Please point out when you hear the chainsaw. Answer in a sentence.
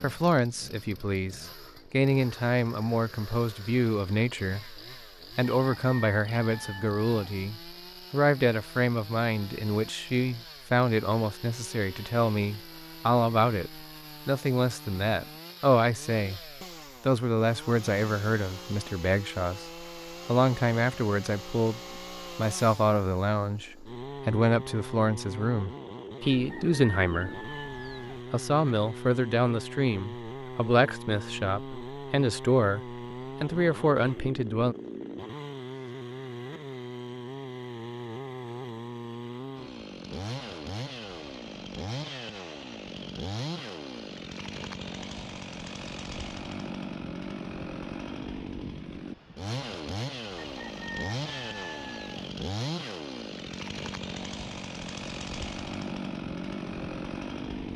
You can hear the chainsaw from 0.0 to 57.7 s.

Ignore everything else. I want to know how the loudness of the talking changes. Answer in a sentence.
The volume of the talking stays about the same.